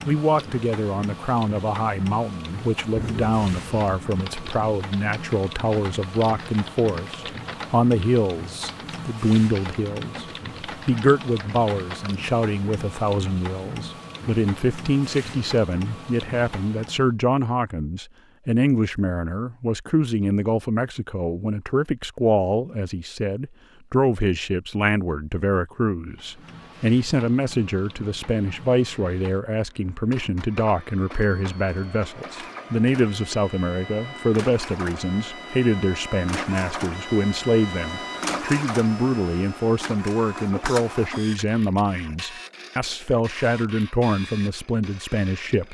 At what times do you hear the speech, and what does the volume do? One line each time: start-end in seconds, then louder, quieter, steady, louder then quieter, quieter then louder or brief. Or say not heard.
0.1-45.6 steady.